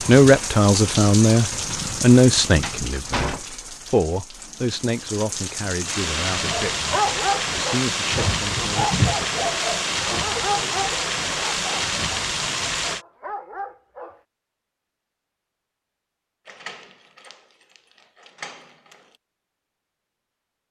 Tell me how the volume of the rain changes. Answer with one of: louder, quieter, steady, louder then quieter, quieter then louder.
quieter then louder.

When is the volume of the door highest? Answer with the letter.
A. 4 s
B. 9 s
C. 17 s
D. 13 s
B.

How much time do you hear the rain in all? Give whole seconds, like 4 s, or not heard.
13 s.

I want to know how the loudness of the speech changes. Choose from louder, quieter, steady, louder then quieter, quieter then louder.
quieter.